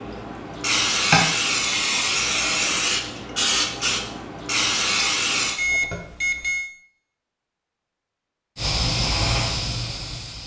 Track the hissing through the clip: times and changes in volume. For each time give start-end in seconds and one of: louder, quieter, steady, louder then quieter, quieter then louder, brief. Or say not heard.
0.0-5.6 steady
8.6-10.4 brief.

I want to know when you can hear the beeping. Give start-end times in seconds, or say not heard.
5.5-6.7.